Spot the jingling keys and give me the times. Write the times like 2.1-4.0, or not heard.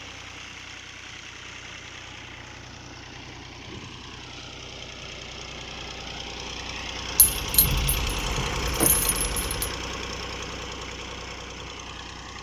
7.2-9.7.